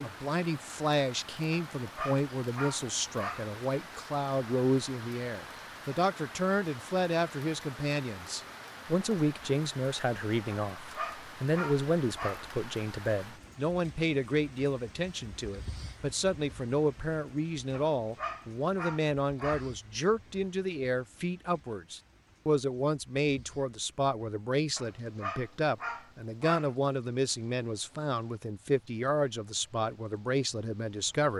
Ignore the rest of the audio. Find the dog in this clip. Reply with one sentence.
You can hear the dog from 1.5 to 3.5 s, from 10.5 to 12.5 s, from 17.7 to 19.7 s and from 24.8 to 26.8 s.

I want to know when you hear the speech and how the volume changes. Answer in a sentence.
You can hear the speech from 0.0 to 31.3 s, at a steady volume.